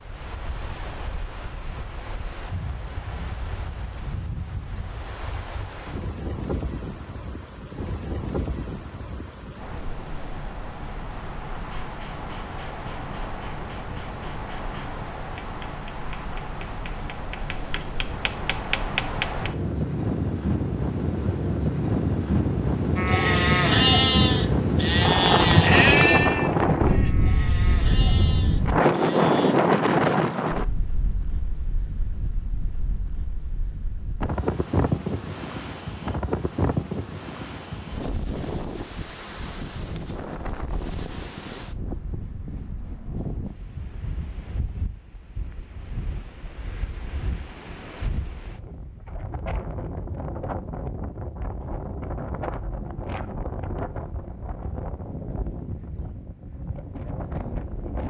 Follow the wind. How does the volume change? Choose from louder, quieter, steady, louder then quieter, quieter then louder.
louder then quieter.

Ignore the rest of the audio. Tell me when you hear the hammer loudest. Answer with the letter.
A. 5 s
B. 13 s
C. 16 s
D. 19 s
D.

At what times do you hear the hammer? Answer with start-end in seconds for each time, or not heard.
11.7-19.5.